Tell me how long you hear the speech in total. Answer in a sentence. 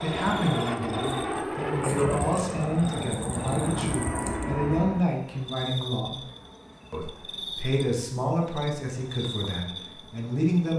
The speech can be heard for 10 seconds in total.